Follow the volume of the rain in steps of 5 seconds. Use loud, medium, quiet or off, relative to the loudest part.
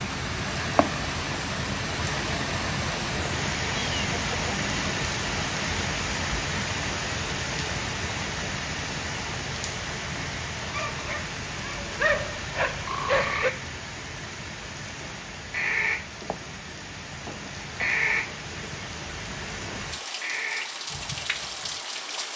loud, loud, medium, medium, medium.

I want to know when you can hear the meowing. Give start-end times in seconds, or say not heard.
3.8-4.5.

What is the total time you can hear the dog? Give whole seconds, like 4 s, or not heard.
3 s.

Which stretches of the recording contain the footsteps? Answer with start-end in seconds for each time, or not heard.
not heard.